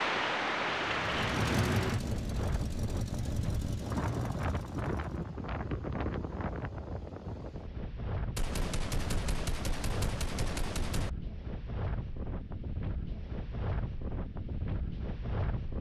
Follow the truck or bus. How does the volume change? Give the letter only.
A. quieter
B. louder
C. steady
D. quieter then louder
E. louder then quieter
A.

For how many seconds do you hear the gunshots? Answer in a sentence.
You can hear the gunshots for 3 seconds altogether.